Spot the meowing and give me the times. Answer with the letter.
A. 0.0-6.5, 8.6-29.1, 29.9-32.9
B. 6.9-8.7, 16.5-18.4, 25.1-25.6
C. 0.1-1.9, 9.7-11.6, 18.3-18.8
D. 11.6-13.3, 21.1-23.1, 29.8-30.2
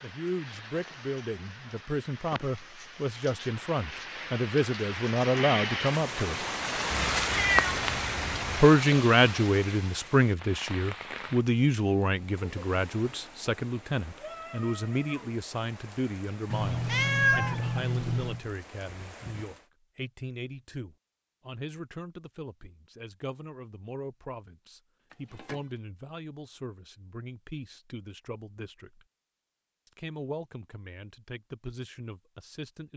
B.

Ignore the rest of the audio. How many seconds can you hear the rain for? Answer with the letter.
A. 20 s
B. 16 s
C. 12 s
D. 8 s
A.